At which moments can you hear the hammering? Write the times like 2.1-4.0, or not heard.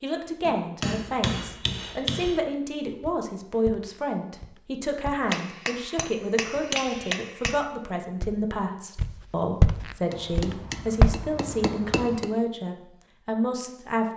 0.4-2.4, 5.3-7.7, 10.1-12.3.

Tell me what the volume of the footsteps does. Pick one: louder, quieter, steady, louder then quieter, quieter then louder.
louder.